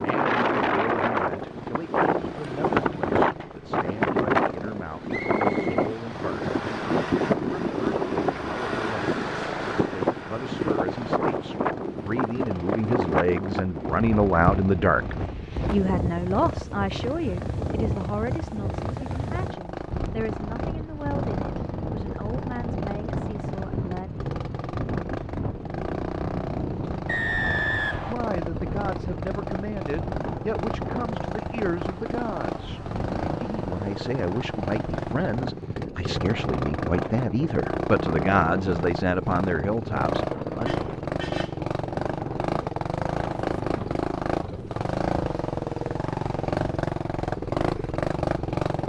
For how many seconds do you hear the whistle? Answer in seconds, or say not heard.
2 s.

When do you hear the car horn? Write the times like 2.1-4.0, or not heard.
40.6-41.6.